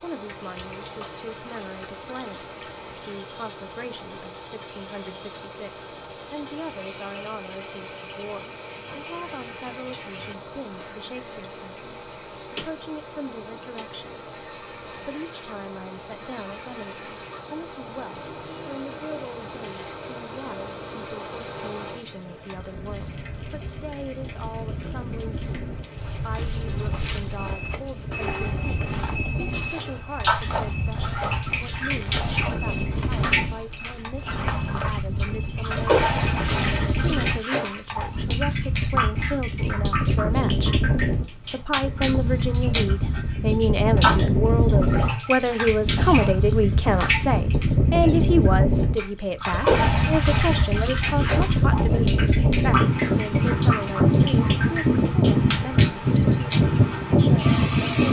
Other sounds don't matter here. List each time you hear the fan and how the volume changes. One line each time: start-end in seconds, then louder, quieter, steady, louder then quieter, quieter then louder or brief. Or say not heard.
0.0-58.0 louder.